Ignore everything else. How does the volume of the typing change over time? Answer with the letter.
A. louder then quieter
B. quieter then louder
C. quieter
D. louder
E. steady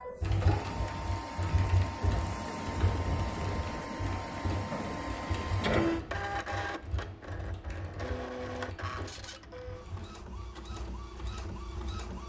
C.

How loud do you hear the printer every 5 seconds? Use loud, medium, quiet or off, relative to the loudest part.
loud, loud, medium.